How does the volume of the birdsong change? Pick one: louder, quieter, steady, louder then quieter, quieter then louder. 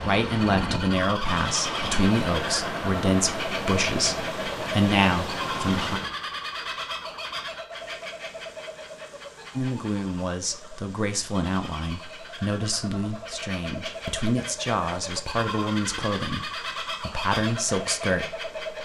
quieter then louder.